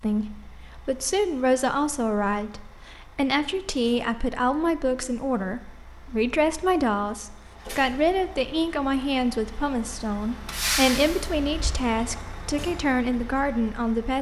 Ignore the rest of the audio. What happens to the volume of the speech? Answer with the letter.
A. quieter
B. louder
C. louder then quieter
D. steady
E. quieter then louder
D.